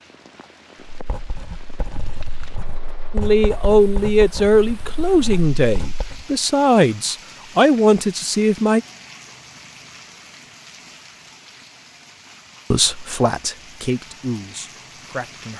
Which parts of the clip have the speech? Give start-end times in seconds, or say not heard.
3.1-8.8, 12.7-15.5.